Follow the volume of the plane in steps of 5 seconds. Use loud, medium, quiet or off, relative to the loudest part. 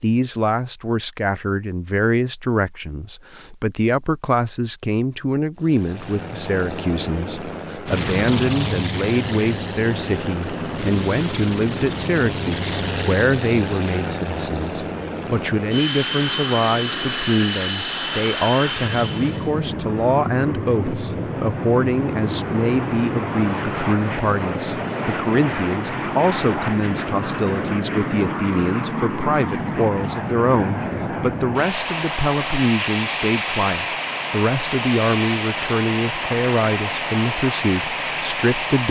off, loud, loud, loud, loud, loud, loud, loud.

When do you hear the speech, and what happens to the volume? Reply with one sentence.
The speech can be heard from 0.0 to 38.8 s, at a steady volume.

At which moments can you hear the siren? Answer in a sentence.
The siren can't be heard in this clip.